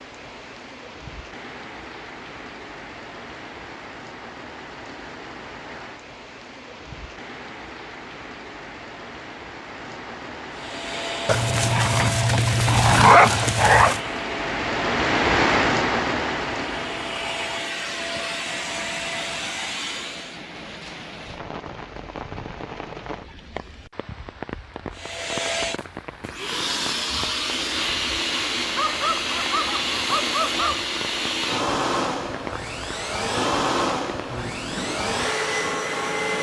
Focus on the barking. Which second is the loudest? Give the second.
13 s.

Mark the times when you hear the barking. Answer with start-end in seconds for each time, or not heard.
11.2-14.0, 28.7-30.8.